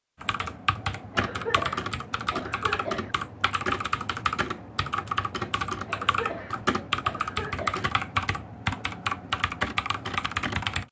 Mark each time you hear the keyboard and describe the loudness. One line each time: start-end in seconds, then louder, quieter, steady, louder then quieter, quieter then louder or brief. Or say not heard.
0.2-10.8 steady.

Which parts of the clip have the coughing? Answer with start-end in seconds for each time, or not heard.
1.1-3.1, 5.8-7.8.